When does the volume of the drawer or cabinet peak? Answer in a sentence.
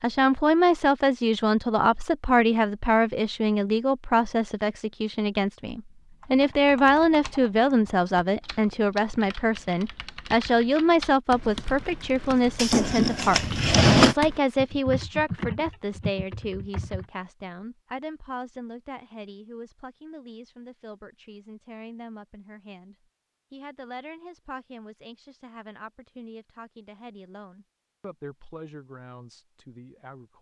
The loudest moment of the drawer or cabinet is at 14 seconds.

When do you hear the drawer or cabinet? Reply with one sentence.
You can hear the drawer or cabinet from 12.6 to 14.2 s.